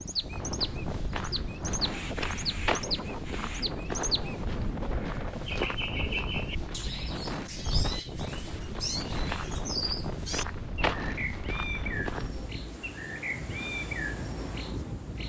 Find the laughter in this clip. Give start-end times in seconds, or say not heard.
not heard.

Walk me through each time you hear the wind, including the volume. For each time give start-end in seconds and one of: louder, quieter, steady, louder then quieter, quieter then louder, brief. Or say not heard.
0.0-15.2 steady.